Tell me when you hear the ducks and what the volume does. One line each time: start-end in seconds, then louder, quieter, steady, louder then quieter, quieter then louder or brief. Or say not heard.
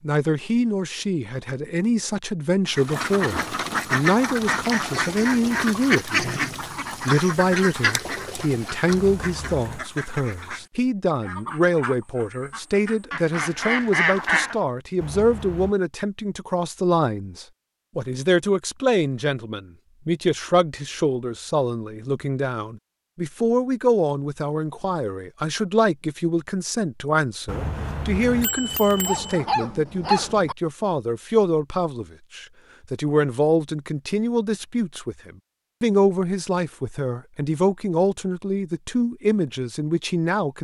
2.6-14.6 quieter then louder.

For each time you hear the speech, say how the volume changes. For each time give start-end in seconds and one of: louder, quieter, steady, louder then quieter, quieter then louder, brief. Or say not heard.
0.0-6.3 steady
7.0-40.5 steady.